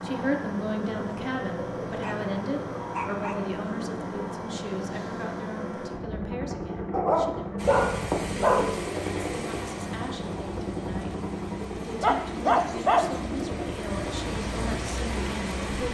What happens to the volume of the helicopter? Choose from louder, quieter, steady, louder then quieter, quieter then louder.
steady.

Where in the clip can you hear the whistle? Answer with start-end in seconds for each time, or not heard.
not heard.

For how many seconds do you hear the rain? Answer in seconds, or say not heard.
8 s.